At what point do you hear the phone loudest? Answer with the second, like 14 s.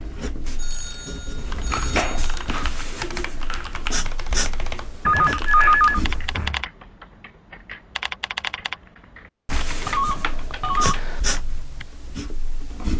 6 s.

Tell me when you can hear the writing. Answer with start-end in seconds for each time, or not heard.
0.0-6.5, 9.4-12.9.